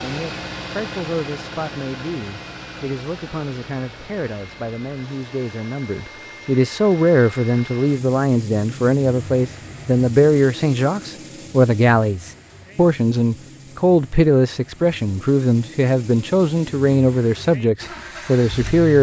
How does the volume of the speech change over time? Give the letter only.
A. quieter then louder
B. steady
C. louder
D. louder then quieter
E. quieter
C.